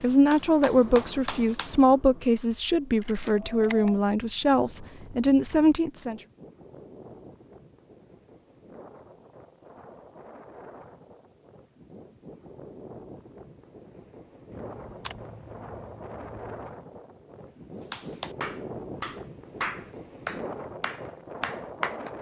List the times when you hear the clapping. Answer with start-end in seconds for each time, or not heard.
0.0-1.7, 17.9-22.1.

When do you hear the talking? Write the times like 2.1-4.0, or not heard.
0.0-6.2.